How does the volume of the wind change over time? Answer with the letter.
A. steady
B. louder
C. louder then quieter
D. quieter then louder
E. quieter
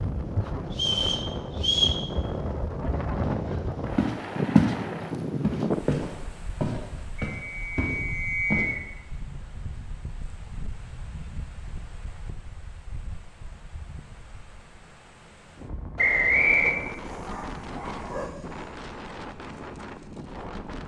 D.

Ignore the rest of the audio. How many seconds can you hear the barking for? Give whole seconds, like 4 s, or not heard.
2 s.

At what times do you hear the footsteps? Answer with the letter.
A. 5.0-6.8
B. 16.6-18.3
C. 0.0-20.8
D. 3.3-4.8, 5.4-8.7
D.